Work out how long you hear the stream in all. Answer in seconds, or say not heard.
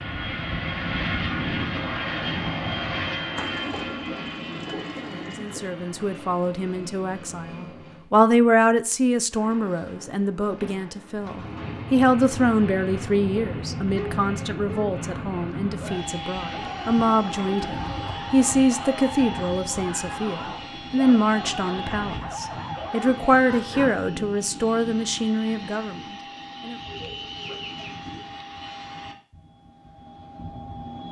not heard.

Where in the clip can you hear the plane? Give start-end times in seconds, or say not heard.
0.0-8.1, 11.2-31.0.